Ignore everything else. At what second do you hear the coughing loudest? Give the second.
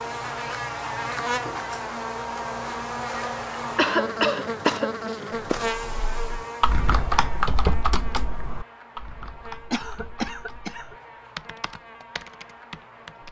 4 s.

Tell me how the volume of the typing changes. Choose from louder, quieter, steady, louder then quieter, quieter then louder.
quieter.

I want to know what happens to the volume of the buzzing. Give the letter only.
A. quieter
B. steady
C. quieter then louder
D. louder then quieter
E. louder
A.